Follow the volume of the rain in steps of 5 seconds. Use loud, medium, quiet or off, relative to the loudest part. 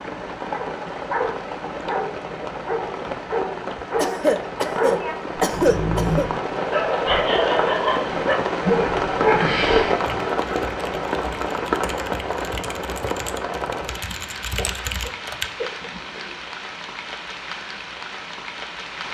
medium, loud, loud, medium.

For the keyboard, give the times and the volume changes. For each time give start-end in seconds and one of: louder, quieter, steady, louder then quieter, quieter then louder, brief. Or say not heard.
9.9-15.4 louder.